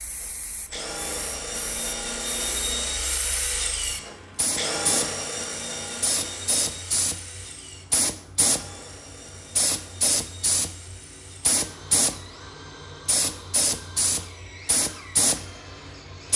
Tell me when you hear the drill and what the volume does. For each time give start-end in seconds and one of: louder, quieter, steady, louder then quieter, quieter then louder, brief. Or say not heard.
0.0-16.3 quieter.